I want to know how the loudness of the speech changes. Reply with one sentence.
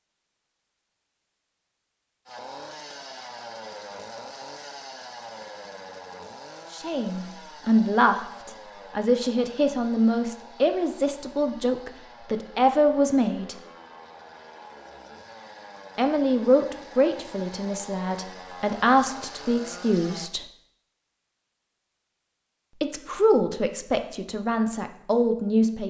The volume of the speech stays about the same.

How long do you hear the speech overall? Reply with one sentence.
You can hear the speech for 14 seconds altogether.